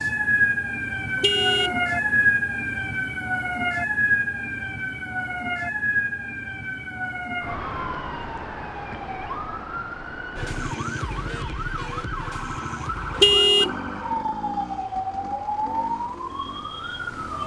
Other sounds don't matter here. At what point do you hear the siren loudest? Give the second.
2 s.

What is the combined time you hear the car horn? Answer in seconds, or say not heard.
2 s.